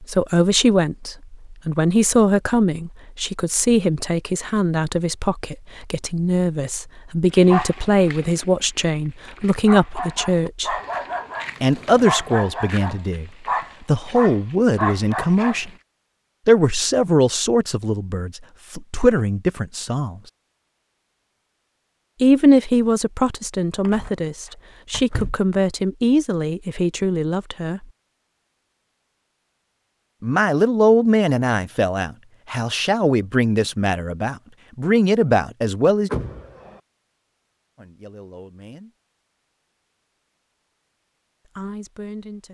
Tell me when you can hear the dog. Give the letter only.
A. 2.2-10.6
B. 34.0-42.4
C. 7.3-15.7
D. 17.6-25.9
C.